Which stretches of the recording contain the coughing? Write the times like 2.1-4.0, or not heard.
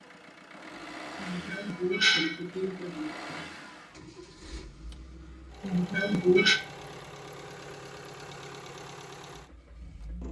1.2-3.1, 5.6-6.6.